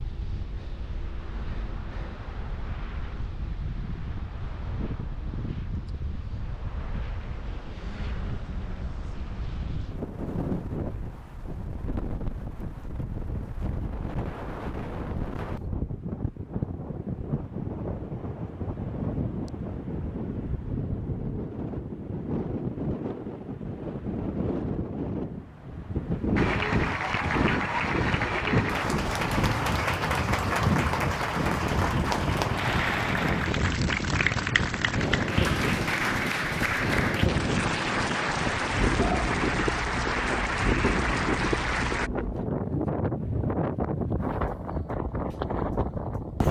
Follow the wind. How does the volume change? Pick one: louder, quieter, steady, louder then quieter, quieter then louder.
louder.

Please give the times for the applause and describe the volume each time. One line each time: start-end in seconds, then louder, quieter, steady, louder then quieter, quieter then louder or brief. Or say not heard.
26.4-42.1 steady.